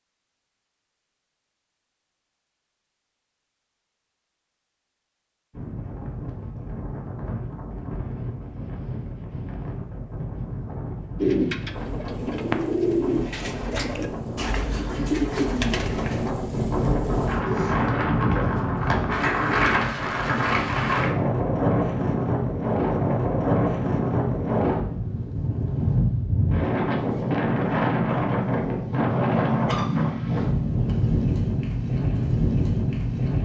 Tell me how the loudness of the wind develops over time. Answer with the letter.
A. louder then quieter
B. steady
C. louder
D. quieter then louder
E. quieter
C.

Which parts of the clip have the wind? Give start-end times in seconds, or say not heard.
5.5-33.4.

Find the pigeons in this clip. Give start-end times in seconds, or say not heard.
11.2-19.8.